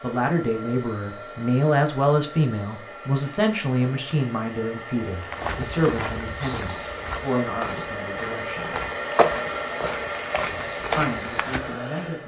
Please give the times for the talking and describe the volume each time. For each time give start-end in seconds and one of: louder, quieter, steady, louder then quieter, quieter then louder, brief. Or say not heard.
0.0-8.8 quieter
10.9-12.2 brief.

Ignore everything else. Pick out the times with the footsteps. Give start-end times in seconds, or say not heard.
5.2-11.7.